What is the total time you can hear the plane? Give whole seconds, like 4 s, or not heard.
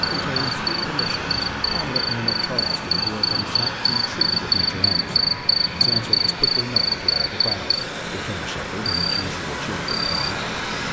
11 s.